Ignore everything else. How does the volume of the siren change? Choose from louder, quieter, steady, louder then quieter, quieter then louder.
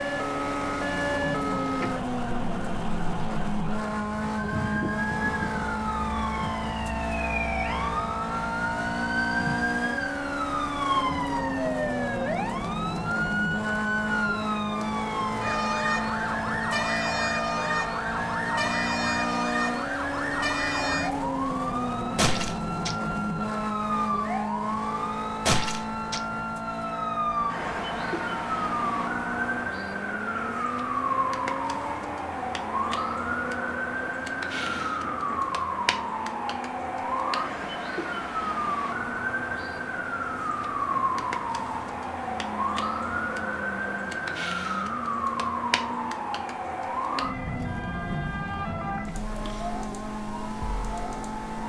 steady.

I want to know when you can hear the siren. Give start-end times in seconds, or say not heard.
0.0-51.6.